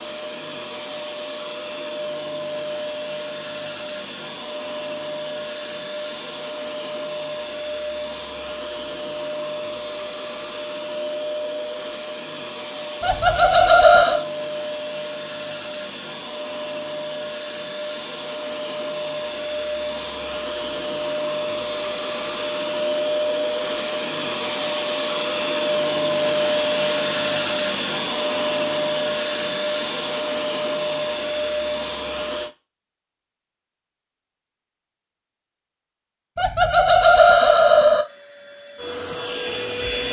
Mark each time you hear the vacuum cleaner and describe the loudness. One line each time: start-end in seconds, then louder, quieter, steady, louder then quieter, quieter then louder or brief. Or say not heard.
0.0-32.5 louder
38.0-40.0 brief.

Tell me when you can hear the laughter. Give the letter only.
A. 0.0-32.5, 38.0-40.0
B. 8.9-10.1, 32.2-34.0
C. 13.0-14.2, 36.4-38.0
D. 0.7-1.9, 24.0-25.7
C.